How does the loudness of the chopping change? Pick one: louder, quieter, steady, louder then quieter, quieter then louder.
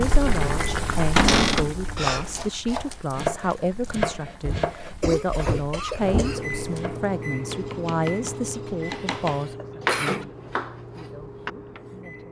quieter then louder.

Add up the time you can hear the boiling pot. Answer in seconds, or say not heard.
7 s.